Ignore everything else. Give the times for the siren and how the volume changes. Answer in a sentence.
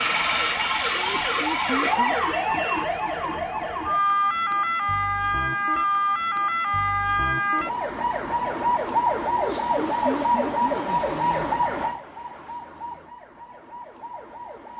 The siren can be heard from 0.0 to 14.7 s, getting quieter.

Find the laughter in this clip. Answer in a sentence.
The laughter can be heard from 0.9 to 2.1 s and from 9.3 to 11.6 s.